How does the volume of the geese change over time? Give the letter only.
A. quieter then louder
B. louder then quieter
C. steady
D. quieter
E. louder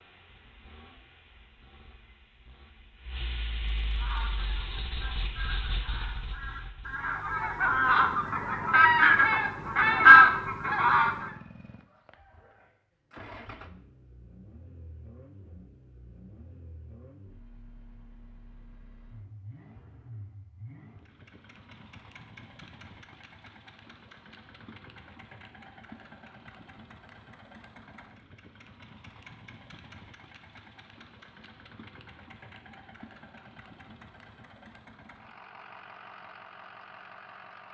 E.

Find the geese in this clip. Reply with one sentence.
You can hear the geese from 4.0 to 11.3 s.